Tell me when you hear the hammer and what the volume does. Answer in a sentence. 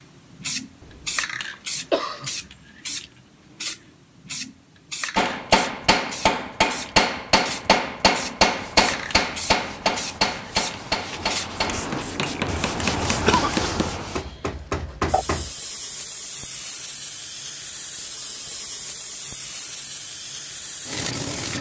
The hammer can be heard from 5.2 to 15.6 s, getting quieter.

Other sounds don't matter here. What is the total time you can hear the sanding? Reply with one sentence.
The sanding can be heard for 6 seconds in total.